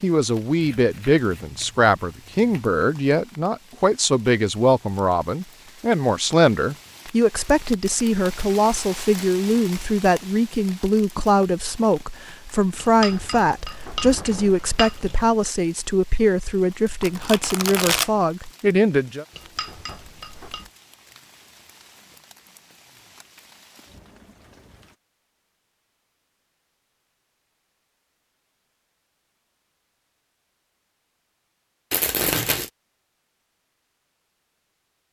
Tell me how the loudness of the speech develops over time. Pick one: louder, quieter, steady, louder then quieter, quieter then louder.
steady.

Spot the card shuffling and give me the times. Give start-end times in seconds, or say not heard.
0.6-2.8, 17.0-18.1, 31.9-32.7.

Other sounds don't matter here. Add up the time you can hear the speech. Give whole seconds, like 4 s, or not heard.
19 s.